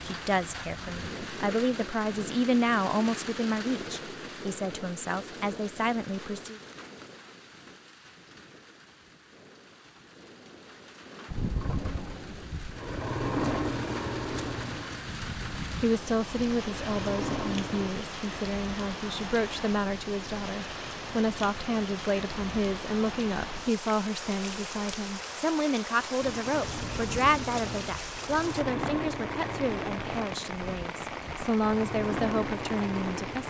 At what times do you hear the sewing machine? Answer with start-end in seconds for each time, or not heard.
11.3-17.9, 26.2-33.4.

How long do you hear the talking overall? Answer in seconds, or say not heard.
24 s.